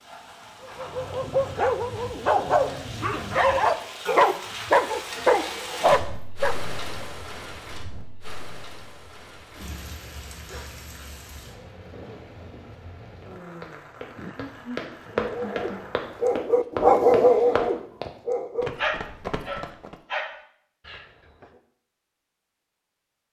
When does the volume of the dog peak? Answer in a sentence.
The volume of the dog peaks at 17 seconds.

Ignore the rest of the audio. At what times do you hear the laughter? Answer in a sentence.
The laughter can be heard from 14.2 to 15.8 s.